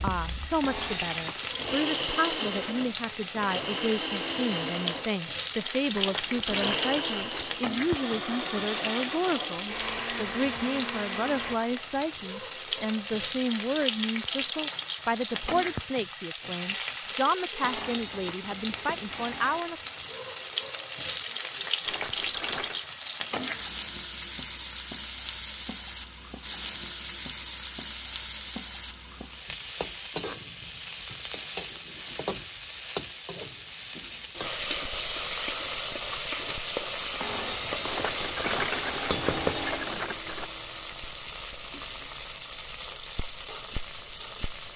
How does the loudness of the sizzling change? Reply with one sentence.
The loudness of the sizzling stays about the same.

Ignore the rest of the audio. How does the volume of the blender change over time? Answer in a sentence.
The loudness of the blender stays about the same.